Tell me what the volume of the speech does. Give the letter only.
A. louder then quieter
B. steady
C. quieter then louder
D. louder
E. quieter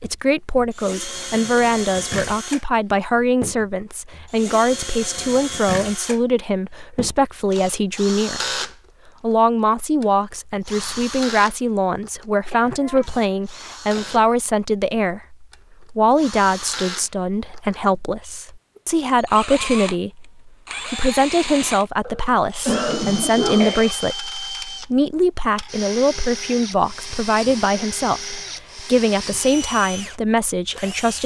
B.